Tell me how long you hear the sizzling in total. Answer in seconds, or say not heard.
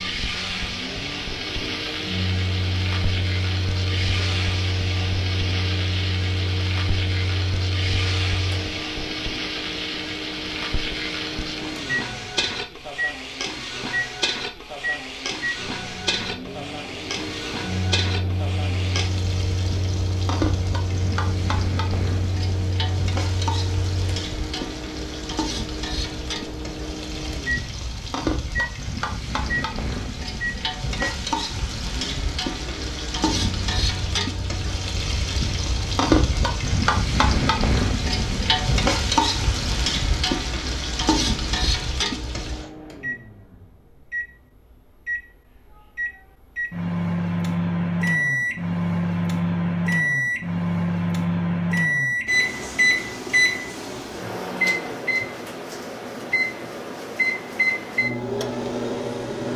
43 s.